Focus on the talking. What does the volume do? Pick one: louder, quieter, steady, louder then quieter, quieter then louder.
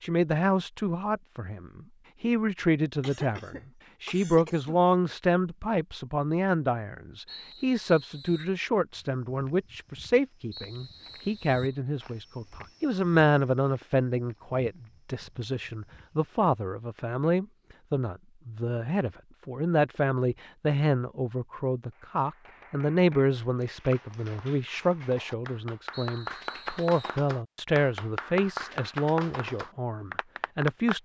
steady.